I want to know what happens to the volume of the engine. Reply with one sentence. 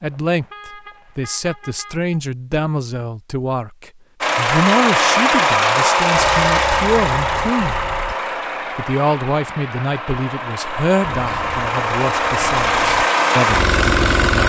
The volume of the engine goes down, then up.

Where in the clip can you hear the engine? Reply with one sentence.
You can hear the engine from 4.2 to 14.4 s.